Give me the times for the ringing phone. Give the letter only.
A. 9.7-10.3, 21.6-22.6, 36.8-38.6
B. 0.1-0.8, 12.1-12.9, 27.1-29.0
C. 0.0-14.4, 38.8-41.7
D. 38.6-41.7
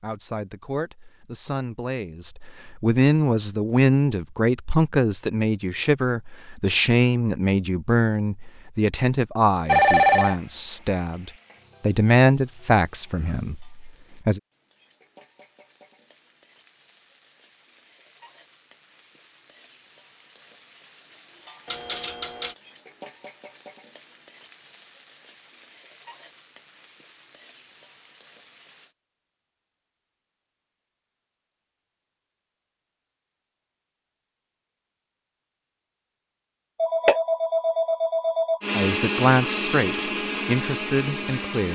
A.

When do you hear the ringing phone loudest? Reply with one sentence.
The loudest moment of the ringing phone is at 10 seconds.